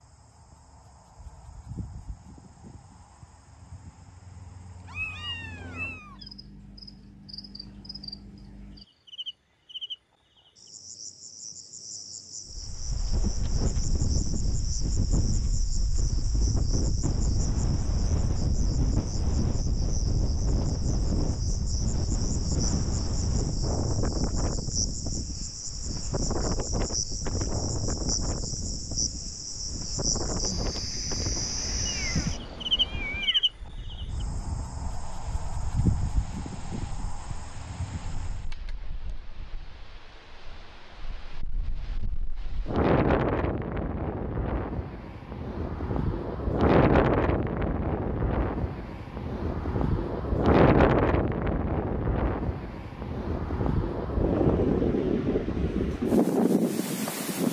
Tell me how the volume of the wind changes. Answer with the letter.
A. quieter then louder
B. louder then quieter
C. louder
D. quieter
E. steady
A.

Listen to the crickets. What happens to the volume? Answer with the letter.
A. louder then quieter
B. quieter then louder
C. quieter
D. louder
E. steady
D.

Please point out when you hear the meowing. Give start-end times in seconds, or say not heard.
4.8-6.2, 31.9-33.5.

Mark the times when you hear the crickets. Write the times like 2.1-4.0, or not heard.
0.0-38.5.